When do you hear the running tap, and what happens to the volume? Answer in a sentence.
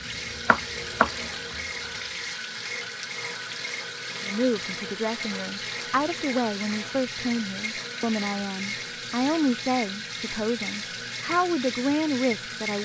The running tap can be heard from 0.0 to 12.8 s, at a steady volume.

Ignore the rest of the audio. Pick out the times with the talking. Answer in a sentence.
The talking can be heard from 4.2 to 12.8 s.